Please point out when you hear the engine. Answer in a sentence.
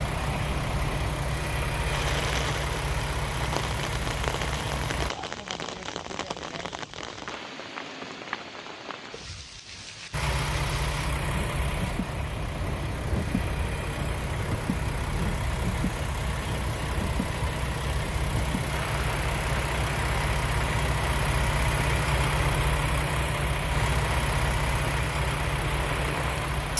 You can hear the engine from 0.0 to 5.1 s and from 10.1 to 26.7 s.